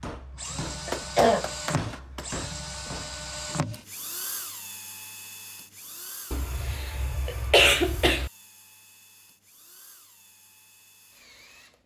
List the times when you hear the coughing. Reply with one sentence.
You can hear the coughing from 0.8 to 2.2 s and from 6.3 to 8.3 s.